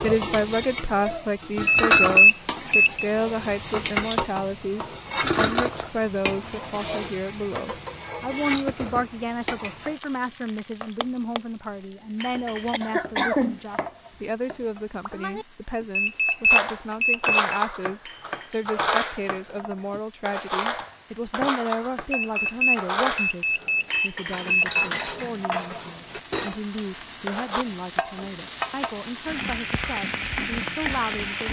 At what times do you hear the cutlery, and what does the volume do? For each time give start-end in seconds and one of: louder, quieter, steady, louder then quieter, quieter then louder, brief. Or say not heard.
16.5-27.6 quieter.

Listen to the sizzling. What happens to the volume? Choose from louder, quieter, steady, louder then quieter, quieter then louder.
quieter then louder.